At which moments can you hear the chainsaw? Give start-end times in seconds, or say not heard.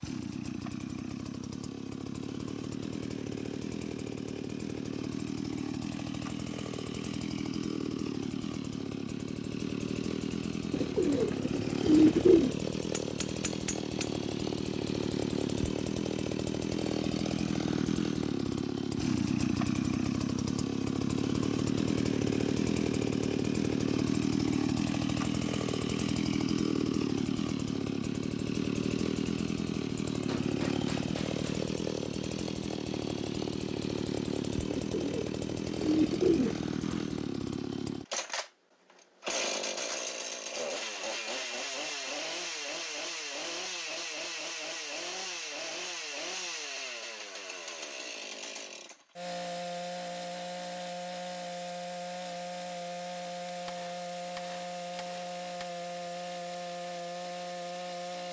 0.0-58.2.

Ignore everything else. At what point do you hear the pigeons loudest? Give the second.
12 s.